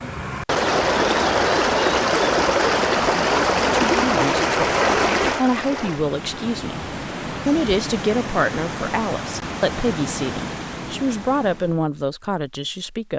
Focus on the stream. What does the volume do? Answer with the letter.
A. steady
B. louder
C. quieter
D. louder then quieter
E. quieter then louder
C.